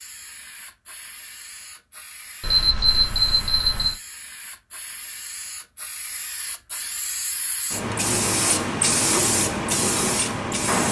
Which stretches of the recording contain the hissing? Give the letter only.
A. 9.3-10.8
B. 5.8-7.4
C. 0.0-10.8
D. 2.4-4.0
C.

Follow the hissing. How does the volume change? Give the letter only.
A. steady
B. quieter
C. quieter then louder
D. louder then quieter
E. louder
E.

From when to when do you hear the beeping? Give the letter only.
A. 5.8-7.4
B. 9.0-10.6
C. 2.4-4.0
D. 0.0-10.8
C.